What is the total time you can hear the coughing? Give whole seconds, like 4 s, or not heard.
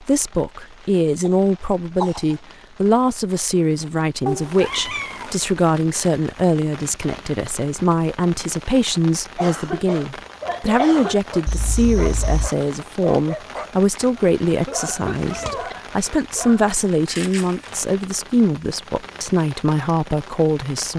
5 s.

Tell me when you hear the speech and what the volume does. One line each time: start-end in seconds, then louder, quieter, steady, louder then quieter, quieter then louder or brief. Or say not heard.
0.0-20.9 steady.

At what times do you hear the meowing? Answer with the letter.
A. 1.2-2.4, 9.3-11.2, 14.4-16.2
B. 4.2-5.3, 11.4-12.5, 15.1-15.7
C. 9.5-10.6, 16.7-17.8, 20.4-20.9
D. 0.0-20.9
B.